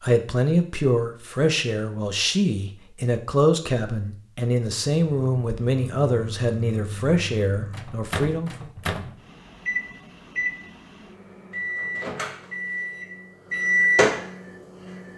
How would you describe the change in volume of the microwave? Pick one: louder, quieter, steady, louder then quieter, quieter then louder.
louder.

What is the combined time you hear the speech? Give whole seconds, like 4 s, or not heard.
9 s.